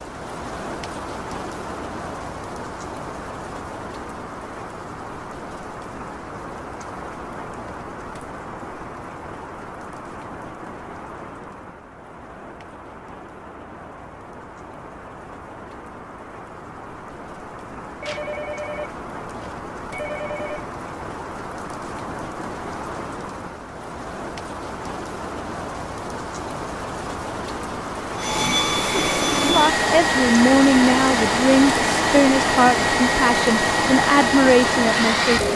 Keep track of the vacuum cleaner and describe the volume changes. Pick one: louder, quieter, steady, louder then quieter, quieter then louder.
steady.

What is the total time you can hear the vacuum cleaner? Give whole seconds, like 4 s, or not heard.
7 s.